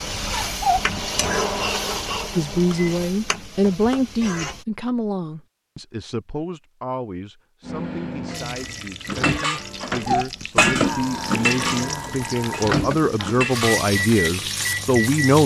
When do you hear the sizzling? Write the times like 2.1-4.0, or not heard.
0.0-4.7, 8.3-15.4.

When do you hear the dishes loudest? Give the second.
11 s.